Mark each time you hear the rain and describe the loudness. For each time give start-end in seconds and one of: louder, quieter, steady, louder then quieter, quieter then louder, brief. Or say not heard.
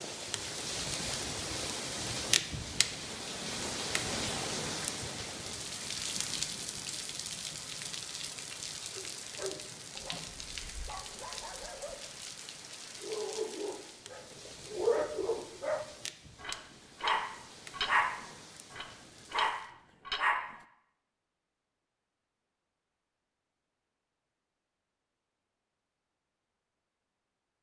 0.0-19.7 quieter.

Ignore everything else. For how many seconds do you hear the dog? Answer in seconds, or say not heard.
12 s.